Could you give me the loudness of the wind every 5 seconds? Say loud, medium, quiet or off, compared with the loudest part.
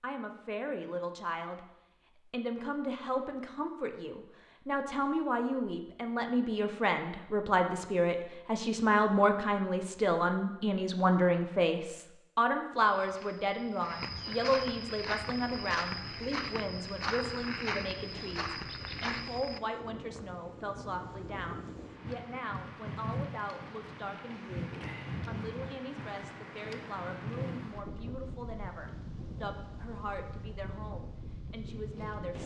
off, off, off, medium, loud, loud, loud.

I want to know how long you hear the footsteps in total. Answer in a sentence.
You can hear the footsteps for 7 seconds altogether.